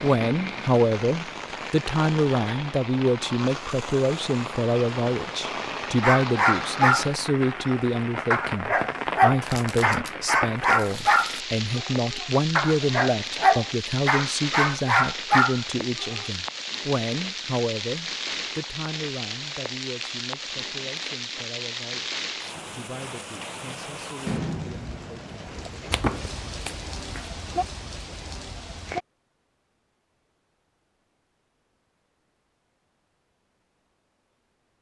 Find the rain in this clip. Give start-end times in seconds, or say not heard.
0.0-29.1.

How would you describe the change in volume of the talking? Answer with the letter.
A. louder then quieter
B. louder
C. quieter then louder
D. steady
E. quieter
E.